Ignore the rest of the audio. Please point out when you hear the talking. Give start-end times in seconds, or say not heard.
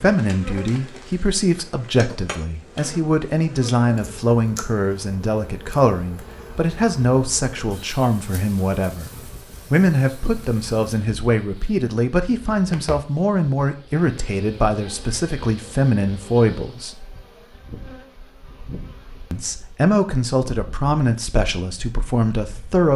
0.0-17.1, 19.3-22.9.